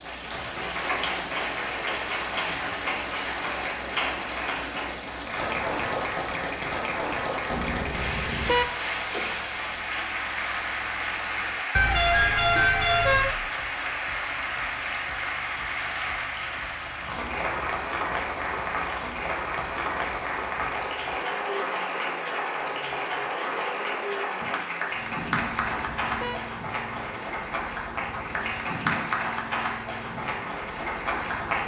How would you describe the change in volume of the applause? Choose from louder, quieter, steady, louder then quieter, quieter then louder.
steady.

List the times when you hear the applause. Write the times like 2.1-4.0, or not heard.
0.0-31.6.